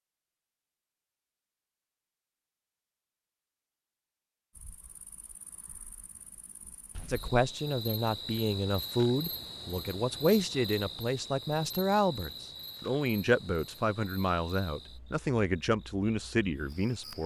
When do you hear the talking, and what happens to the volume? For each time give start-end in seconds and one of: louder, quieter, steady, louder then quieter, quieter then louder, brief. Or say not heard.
7.1-17.2 steady.